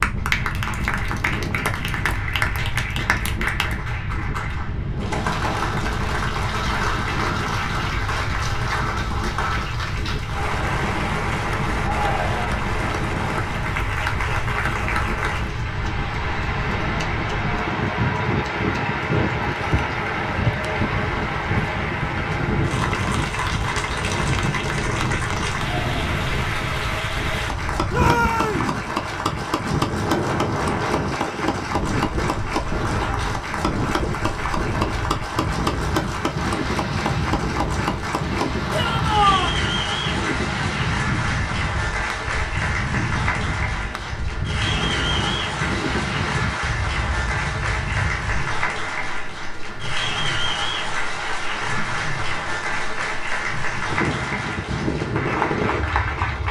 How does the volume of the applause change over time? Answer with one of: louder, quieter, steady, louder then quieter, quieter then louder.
steady.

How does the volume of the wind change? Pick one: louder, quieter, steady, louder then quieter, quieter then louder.
steady.